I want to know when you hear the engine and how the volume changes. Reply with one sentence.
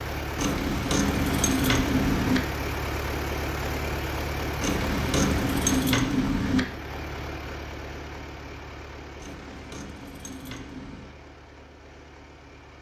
You can hear the engine from 0.0 to 12.7 s, getting quieter.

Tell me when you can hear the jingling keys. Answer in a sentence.
The jingling keys can be heard from 0.3 to 2.4 s, from 4.6 to 6.6 s and from 9.2 to 11.2 s.